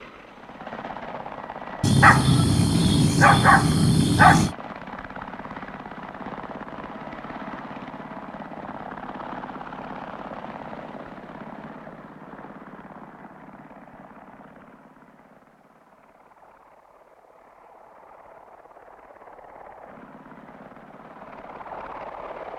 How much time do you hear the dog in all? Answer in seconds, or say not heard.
3 s.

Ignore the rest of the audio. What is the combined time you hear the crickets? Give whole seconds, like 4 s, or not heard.
not heard.